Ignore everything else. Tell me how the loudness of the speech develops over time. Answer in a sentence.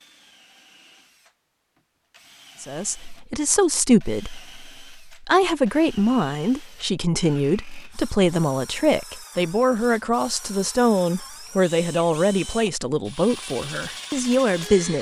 The volume of the speech stays about the same.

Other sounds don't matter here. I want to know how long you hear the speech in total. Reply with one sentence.
You can hear the speech for 12 seconds altogether.